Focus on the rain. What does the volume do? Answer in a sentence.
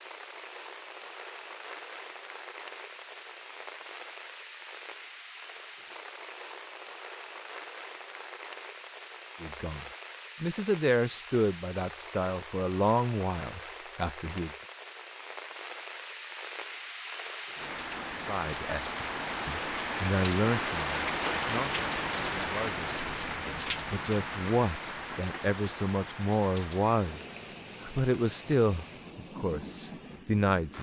The volume of the rain goes up, then down.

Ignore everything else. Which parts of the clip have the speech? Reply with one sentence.
The speech can be heard from 9.4 to 14.5 s and from 18.2 to 30.7 s.